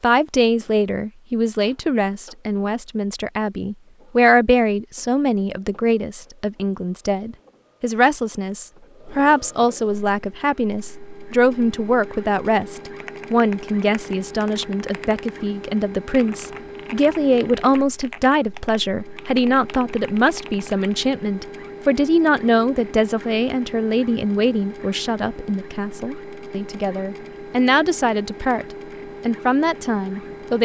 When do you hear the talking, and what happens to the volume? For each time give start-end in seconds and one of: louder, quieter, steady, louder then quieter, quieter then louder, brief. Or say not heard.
0.0-28.6 steady
29.2-30.6 brief.